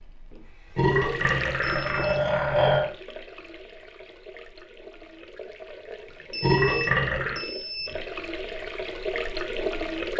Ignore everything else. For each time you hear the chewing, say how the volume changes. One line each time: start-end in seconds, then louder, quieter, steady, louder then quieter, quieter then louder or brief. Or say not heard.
not heard.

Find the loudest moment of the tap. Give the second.
10 s.